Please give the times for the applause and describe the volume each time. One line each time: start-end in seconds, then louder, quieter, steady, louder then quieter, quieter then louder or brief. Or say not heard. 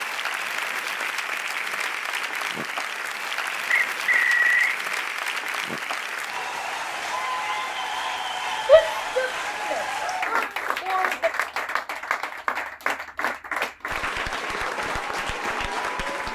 0.0-16.2 steady.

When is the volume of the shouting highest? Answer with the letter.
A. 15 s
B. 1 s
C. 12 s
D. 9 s
D.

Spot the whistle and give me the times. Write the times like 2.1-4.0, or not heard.
3.7-4.8.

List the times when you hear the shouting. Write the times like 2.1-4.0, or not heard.
8.7-11.3.